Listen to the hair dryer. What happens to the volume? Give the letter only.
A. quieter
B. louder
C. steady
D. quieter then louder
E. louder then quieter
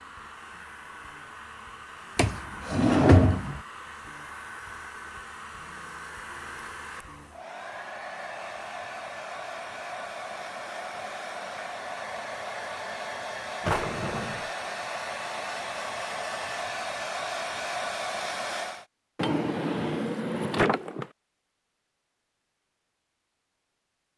B.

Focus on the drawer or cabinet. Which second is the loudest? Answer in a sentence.
The volume of the drawer or cabinet peaks at 3 seconds.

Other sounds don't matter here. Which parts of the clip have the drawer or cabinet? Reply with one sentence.
The drawer or cabinet can be heard from 2.1 to 3.6 s, from 13.6 to 14.4 s and from 19.1 to 21.1 s.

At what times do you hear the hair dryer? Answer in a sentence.
The hair dryer can be heard from 0.0 to 18.9 s.